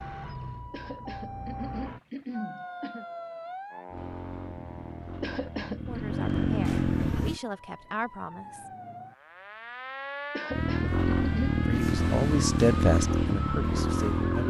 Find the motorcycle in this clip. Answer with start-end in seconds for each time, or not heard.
3.9-7.4, 10.5-14.4.